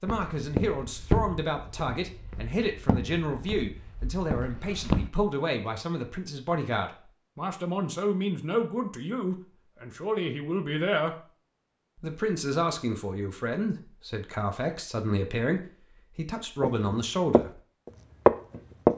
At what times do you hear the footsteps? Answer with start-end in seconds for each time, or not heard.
0.1-5.1, 16.6-17.4, 18.2-18.9.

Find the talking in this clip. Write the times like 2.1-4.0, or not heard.
0.0-11.2, 12.0-17.6.